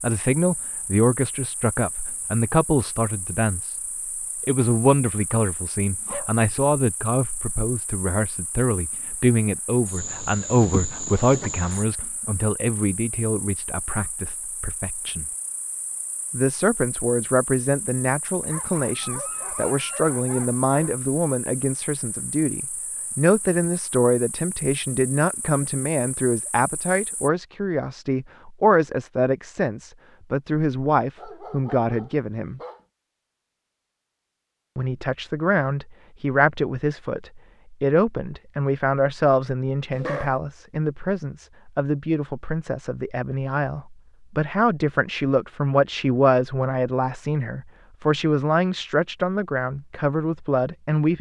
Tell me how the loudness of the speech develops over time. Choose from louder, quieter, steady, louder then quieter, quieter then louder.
steady.